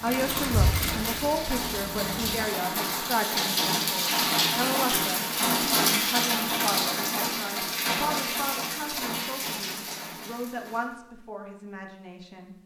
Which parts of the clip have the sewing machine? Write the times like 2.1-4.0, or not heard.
0.0-2.4.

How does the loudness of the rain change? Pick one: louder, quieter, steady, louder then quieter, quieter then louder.
louder then quieter.